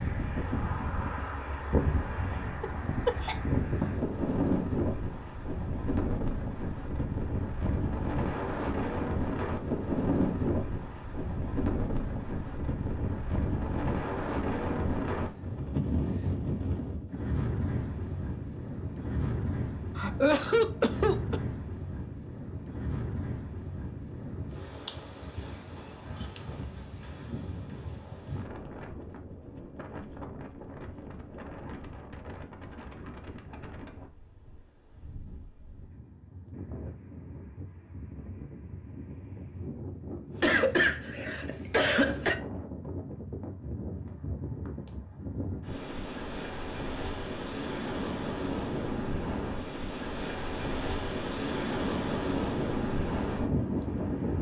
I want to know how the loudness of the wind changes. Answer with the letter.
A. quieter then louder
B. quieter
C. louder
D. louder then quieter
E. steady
A.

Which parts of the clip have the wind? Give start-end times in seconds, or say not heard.
0.0-54.3.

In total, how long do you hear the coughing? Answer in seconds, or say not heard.
4 s.